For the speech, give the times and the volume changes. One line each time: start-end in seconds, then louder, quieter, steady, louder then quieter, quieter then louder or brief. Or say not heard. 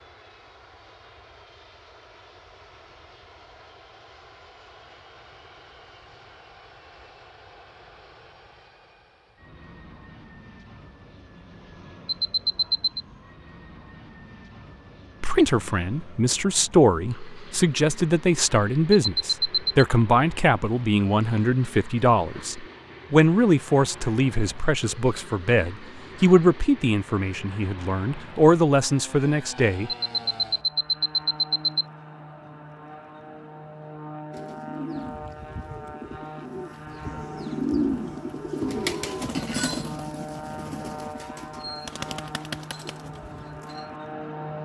15.2-29.9 steady.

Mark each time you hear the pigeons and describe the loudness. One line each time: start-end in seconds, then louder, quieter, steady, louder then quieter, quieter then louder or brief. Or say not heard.
34.3-44.0 louder then quieter.